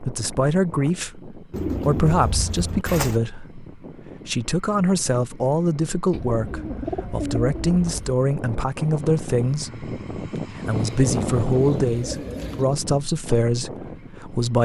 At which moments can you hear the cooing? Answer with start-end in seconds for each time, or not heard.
1.5-3.2, 6.1-8.2, 10.8-12.7.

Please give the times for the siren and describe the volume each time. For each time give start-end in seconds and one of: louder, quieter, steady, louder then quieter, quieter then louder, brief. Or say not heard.
not heard.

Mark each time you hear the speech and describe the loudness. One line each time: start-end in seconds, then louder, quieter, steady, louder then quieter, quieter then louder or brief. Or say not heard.
0.0-14.6 steady.